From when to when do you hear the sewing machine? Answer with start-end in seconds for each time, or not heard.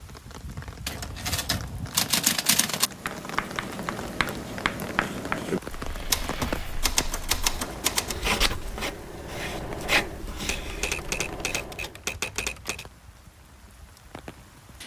5.8-12.1.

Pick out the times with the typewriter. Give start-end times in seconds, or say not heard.
0.8-2.9, 6.1-8.2, 10.6-12.8.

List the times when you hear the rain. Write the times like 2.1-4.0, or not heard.
0.0-14.8.